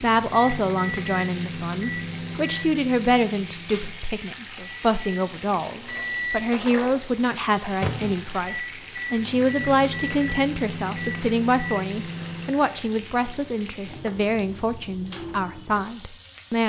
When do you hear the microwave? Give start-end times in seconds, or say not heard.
0.0-12.6.